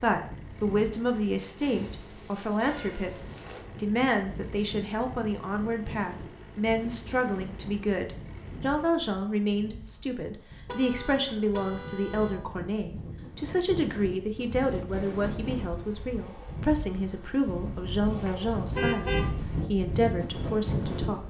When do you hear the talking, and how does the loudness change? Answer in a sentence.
You can hear the talking from 0.0 to 21.2 s, at a steady volume.